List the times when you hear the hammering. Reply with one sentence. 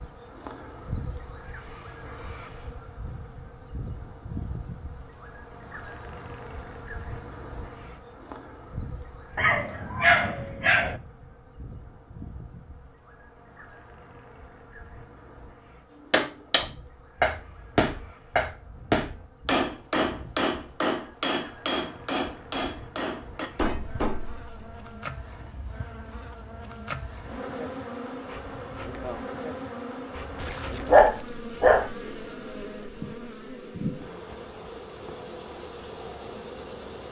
You can hear the hammering from 16.1 to 24.8 s.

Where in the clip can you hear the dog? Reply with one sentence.
The dog can be heard from 9.3 to 11.0 s and from 30.1 to 31.9 s.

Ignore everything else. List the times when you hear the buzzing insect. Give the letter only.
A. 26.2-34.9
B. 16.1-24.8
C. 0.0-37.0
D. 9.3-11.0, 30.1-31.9
C.